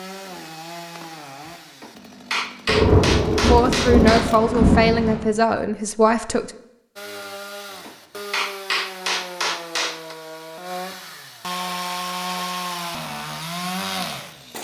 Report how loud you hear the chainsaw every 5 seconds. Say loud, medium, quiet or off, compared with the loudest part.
medium, medium, loud.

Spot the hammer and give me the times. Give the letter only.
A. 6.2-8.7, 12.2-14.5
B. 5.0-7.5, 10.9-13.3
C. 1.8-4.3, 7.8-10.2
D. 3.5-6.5
C.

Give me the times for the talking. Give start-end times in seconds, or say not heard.
3.5-6.5.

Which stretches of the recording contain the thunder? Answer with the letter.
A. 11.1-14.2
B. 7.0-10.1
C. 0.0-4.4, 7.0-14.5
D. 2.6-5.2
D.